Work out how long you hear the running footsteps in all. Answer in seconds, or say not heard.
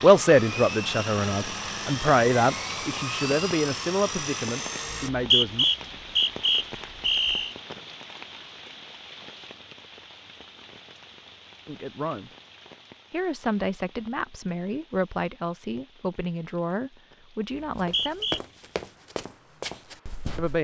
3 s.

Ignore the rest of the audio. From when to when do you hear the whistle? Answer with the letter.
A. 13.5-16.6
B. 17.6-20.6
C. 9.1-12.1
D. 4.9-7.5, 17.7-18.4
D.